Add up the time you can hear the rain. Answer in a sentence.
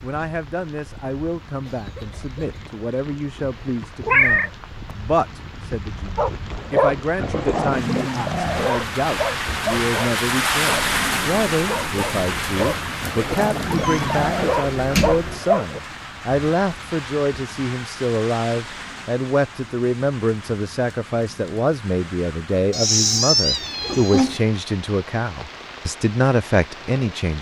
You can hear the rain for 27 seconds altogether.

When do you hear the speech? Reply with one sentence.
The speech can be heard from 0.0 to 27.3 s.